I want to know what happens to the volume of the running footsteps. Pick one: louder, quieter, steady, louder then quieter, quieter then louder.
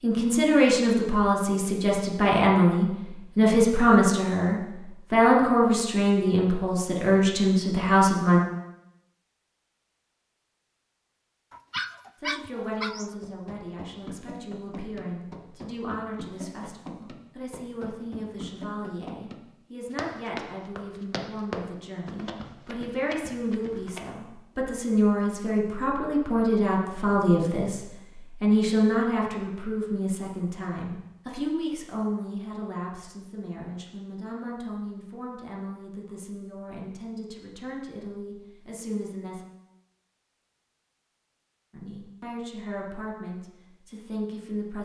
louder then quieter.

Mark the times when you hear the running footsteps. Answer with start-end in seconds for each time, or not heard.
13.2-24.1.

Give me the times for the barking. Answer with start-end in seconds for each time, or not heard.
11.5-13.1.